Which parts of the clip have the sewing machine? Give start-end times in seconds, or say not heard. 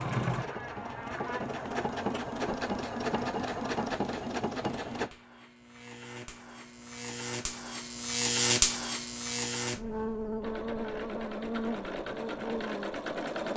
0.0-5.1, 10.4-13.5.